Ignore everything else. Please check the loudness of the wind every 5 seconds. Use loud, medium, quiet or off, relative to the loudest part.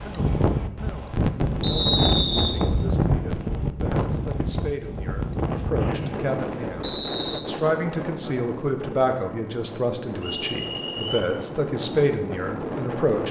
loud, medium, medium.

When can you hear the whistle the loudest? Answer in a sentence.
The volume of the whistle peaks at 2 seconds.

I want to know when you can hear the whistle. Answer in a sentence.
You can hear the whistle from 1.6 to 2.5 s, from 5.8 to 7.4 s and from 10.2 to 11.2 s.